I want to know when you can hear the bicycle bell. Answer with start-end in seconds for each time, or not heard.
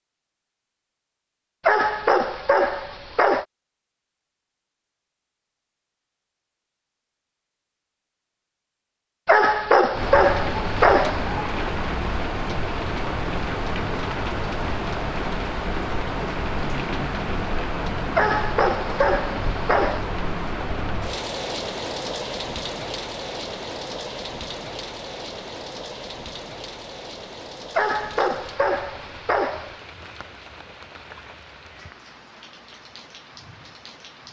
not heard.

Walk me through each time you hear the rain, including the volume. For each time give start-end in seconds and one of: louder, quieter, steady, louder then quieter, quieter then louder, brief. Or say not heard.
9.9-34.2 quieter.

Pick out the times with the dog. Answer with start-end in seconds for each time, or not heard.
1.6-3.5, 9.2-11.3, 18.1-20.1, 27.8-29.8.